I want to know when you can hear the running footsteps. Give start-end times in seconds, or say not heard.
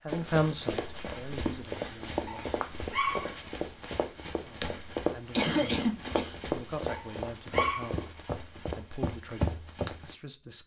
0.1-10.2.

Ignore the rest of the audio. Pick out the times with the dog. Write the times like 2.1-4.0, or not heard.
2.2-3.4, 6.8-8.0.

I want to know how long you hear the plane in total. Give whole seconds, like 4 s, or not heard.
not heard.